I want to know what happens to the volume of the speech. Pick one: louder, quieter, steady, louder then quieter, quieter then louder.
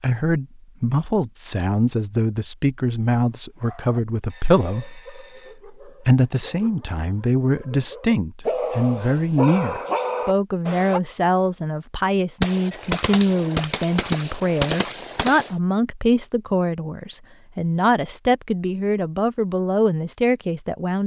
steady.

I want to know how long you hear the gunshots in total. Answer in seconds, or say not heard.
3 s.